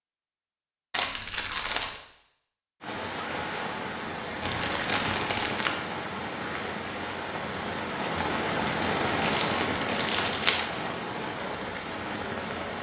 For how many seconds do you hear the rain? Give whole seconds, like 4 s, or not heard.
10 s.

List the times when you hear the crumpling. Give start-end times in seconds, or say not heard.
0.9-2.0, 4.4-5.8, 9.2-10.7.